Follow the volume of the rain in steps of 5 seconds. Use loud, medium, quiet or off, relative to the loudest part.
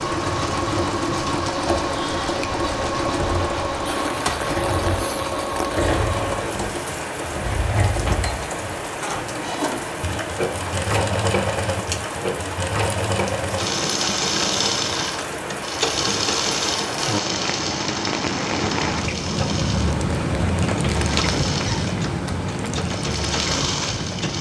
medium, medium, medium, loud, loud.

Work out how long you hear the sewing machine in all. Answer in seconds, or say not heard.
24 s.